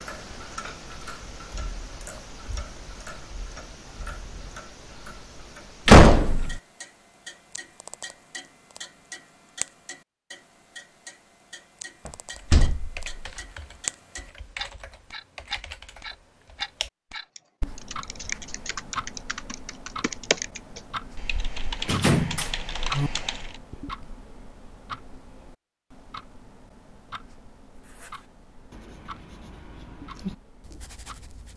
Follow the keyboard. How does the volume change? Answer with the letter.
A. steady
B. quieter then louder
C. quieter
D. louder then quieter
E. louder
E.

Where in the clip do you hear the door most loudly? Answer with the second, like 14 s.
6 s.